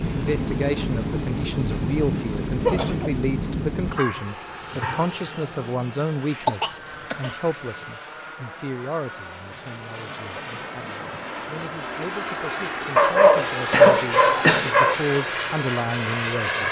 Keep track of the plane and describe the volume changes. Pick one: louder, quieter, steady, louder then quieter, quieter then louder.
quieter then louder.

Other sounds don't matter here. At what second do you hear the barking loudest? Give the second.
14 s.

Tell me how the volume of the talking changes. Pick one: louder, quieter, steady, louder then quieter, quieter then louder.
quieter then louder.